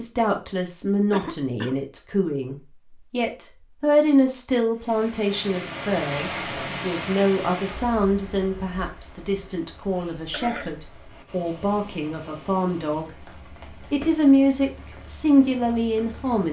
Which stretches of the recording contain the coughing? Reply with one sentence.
The coughing can be heard from 1.1 to 1.8 s and from 9.9 to 10.8 s.